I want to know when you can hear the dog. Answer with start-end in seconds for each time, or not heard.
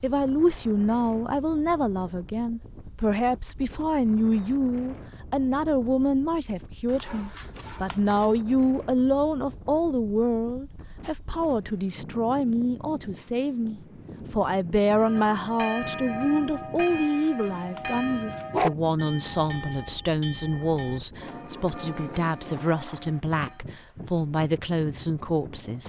6.8-8.2, 16.8-18.7.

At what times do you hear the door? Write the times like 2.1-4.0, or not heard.
not heard.